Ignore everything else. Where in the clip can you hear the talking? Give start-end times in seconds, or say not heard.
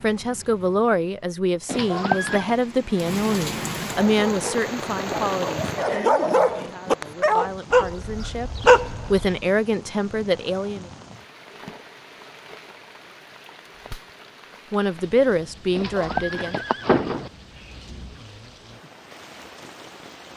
0.0-10.9, 14.7-16.6.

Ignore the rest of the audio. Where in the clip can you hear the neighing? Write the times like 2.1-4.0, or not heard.
1.6-2.5, 15.8-17.3.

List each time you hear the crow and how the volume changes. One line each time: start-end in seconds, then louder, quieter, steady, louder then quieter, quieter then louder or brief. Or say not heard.
not heard.